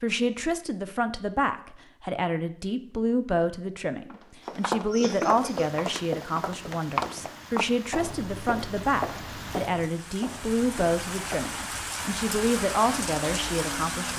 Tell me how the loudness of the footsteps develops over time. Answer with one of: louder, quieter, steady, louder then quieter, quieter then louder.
quieter.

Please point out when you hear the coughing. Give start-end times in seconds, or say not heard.
4.4-5.7.